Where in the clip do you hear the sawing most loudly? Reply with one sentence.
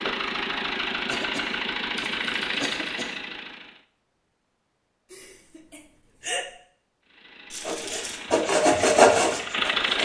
The loudest moment of the sawing is at 9 seconds.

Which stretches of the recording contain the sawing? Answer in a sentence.
The sawing can be heard from 7.7 to 10.0 s.